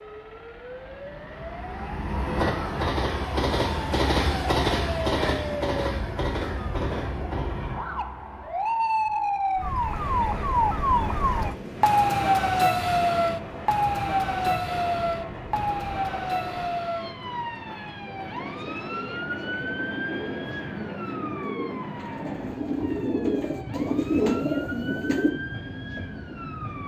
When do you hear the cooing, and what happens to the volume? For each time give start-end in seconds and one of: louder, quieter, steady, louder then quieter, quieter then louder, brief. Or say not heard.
18.4-25.3 louder.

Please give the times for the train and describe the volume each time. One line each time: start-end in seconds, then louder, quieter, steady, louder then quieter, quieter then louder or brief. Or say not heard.
0.0-26.8 quieter.